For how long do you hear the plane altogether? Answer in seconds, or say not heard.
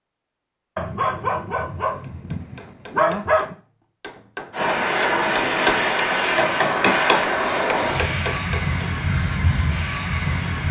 6 s.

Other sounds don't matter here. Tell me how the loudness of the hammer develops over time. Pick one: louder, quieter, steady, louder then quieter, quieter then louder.
louder then quieter.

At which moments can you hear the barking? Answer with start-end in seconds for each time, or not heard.
0.8-3.5.